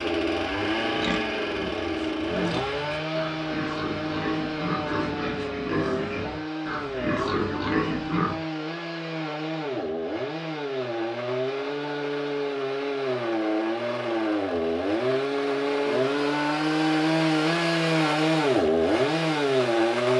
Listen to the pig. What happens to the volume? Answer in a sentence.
The loudness of the pig goes up.